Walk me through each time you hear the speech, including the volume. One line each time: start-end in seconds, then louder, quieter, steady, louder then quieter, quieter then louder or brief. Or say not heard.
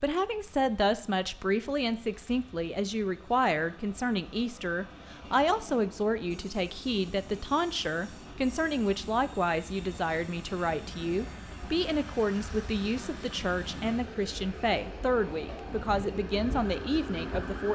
0.0-17.7 steady.